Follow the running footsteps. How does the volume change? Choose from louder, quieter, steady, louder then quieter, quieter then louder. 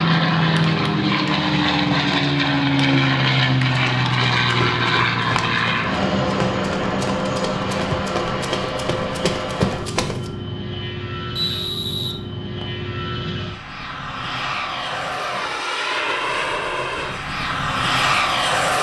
louder.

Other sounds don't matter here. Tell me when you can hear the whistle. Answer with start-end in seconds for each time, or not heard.
11.3-12.8.